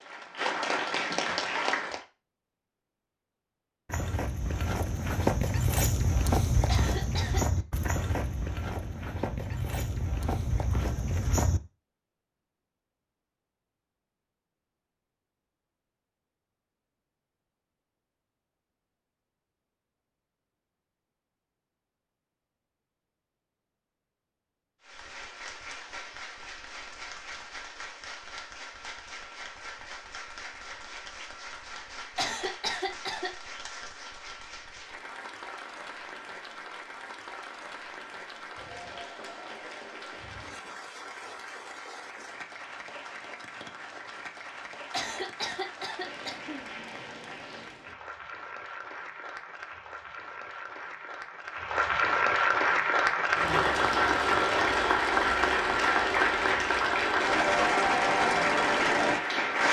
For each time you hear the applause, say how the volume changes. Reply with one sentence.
You can hear the applause briefly from 0.0 to 2.0 s; and from 24.8 to 59.6 s, getting louder.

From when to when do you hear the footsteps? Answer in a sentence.
You can hear the footsteps from 3.9 to 11.6 s.